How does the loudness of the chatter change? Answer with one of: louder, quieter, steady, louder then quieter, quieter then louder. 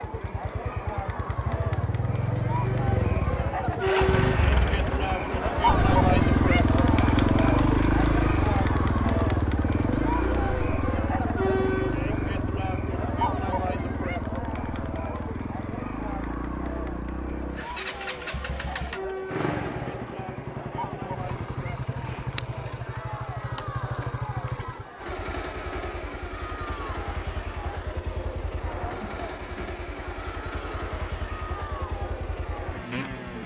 quieter.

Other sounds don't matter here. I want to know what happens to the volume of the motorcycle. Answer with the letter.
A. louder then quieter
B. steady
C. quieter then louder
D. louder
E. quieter
E.